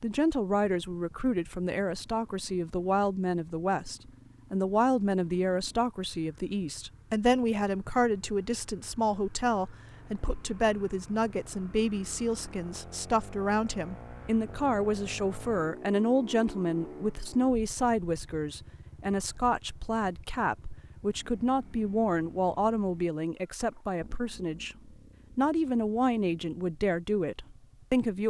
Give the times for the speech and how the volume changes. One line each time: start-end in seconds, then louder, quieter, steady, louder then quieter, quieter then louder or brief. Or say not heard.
0.0-28.2 steady.